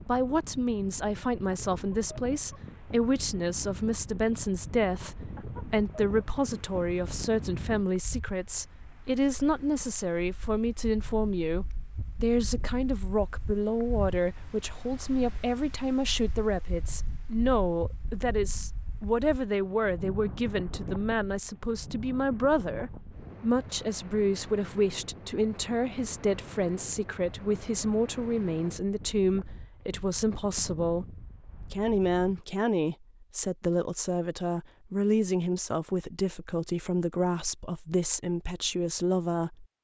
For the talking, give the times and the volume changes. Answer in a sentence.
You can hear the talking from 0.1 to 39.6 s, at a steady volume.